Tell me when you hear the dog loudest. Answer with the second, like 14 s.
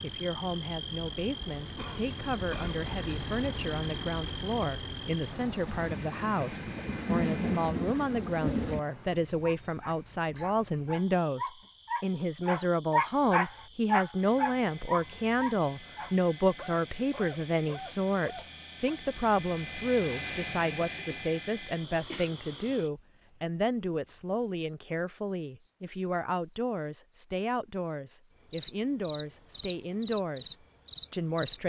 13 s.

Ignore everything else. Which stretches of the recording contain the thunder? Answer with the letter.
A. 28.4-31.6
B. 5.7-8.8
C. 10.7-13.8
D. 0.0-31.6
B.